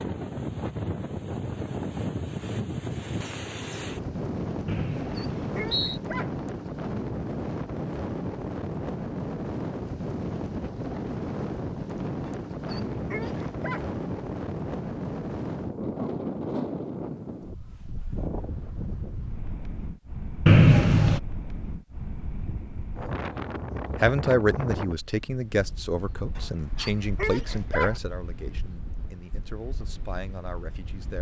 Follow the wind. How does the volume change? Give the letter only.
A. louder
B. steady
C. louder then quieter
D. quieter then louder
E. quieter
E.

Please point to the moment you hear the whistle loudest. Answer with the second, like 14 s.
21 s.